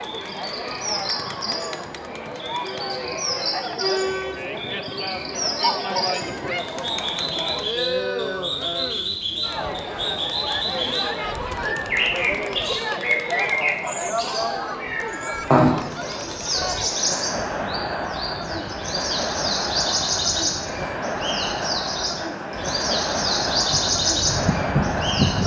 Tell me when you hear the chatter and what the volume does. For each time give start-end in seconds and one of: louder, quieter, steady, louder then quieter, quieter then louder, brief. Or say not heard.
0.0-25.4 steady.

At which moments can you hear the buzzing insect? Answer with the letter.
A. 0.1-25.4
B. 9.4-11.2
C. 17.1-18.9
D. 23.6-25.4
D.